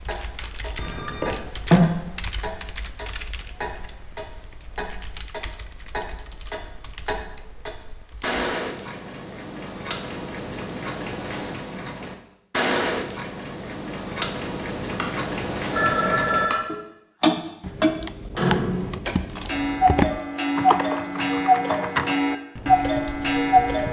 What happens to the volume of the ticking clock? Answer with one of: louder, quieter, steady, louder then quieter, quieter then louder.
louder.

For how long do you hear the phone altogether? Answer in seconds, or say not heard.
3 s.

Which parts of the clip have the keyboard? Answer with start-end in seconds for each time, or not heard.
0.0-8.4, 17.6-23.8.